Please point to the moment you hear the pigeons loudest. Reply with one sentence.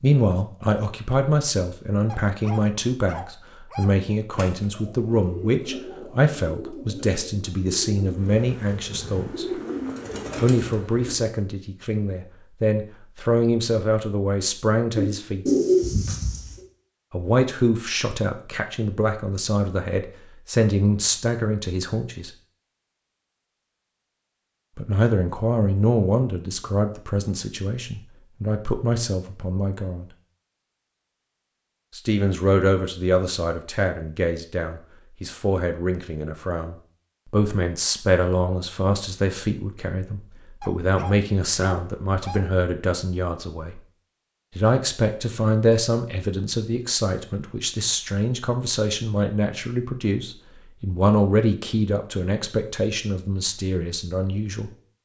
The volume of the pigeons peaks at 16 seconds.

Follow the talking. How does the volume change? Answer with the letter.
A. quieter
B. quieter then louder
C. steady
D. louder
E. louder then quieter
C.